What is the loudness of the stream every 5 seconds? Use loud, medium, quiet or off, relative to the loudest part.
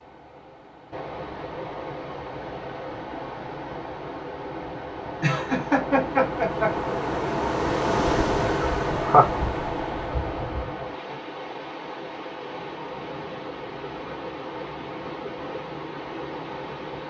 medium, loud, medium, medium.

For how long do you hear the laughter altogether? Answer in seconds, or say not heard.
2 s.